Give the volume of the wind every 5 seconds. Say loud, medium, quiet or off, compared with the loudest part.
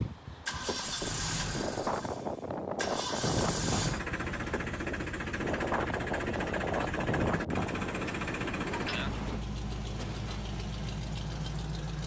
loud, loud, off.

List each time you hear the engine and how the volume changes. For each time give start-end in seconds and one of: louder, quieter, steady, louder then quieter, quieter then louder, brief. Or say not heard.
0.0-12.0 steady.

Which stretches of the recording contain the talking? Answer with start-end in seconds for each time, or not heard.
not heard.